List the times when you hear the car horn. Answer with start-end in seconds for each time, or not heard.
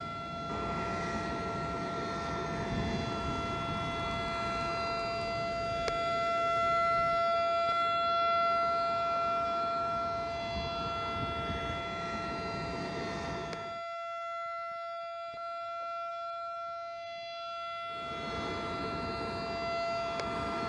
not heard.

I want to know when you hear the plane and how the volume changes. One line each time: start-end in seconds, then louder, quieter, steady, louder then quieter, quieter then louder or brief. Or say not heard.
0.0-13.8 quieter then louder
17.9-20.6 brief.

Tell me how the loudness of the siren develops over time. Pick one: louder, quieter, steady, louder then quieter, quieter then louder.
louder then quieter.